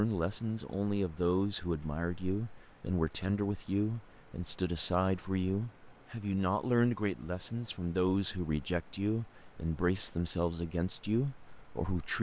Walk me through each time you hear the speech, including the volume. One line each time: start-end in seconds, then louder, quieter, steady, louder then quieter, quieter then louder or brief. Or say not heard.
0.0-12.1 steady.